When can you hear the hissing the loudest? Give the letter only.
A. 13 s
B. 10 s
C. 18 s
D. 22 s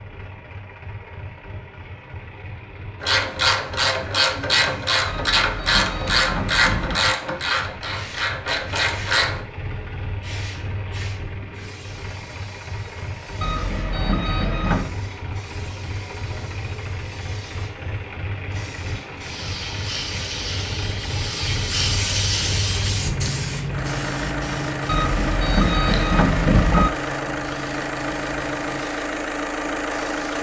D.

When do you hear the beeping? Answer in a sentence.
You can hear the beeping from 5.0 to 7.0 s, from 13.4 to 14.9 s and from 24.9 to 26.9 s.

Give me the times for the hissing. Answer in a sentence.
You can hear the hissing from 7.8 to 30.3 s.